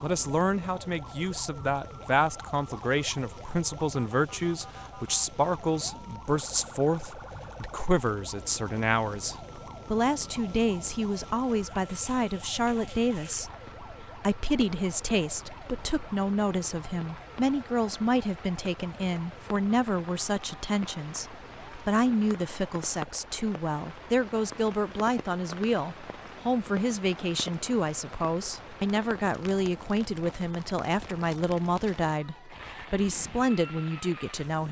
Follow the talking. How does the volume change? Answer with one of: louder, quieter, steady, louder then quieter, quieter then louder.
steady.